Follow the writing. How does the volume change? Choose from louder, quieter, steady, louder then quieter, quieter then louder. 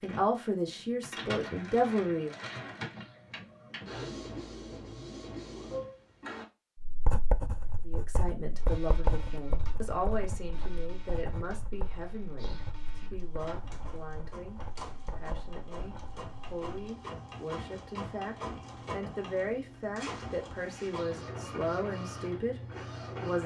quieter.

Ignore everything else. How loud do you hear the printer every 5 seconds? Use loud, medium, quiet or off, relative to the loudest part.
loud, loud, medium, loud, loud.